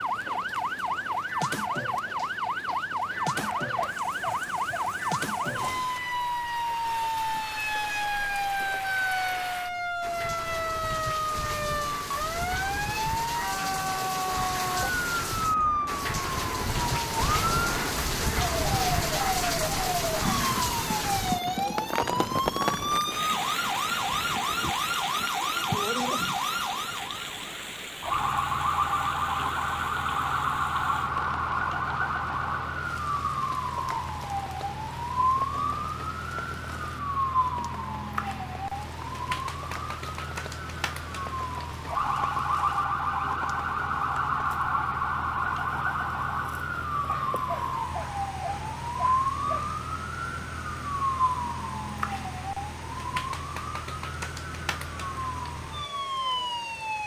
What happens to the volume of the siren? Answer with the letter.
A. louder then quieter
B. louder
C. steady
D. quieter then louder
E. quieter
C.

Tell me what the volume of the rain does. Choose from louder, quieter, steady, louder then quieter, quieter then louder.
louder then quieter.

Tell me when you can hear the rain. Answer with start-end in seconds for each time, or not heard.
0.0-57.0.